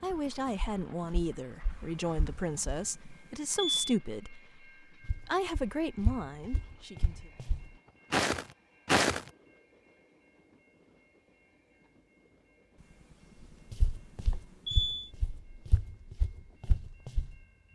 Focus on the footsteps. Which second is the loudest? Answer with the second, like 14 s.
9 s.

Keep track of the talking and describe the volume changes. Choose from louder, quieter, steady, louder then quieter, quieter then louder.
steady.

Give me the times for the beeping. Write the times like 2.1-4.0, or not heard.
1.7-4.0, 12.8-15.1.